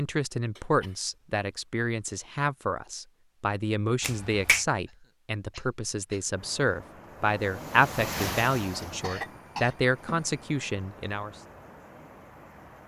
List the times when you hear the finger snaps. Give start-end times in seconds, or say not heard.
4.0-4.7.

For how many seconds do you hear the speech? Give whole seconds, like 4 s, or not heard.
11 s.